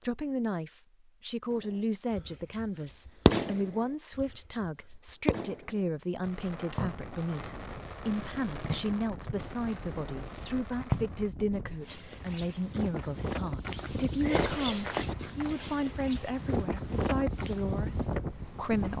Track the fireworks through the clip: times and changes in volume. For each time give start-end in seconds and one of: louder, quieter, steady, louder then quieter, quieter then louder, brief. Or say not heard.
1.5-11.3 quieter.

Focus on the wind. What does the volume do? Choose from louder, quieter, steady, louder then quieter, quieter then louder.
louder.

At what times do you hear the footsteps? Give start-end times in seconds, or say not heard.
11.8-17.6.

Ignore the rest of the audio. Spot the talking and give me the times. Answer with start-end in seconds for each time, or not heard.
0.0-18.9.